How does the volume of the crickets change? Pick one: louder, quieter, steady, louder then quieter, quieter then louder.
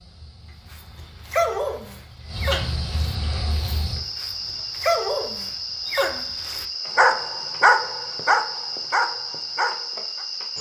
louder.